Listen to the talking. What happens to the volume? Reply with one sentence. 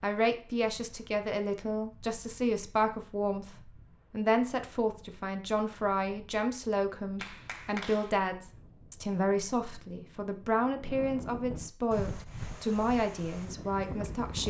The volume of the talking stays about the same.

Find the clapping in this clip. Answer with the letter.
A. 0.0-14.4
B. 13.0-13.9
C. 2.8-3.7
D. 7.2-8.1
D.